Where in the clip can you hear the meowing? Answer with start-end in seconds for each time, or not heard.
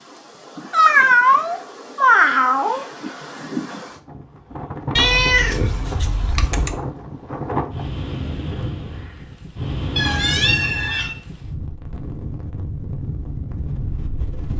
0.7-2.9, 5.0-6.8, 9.9-11.2.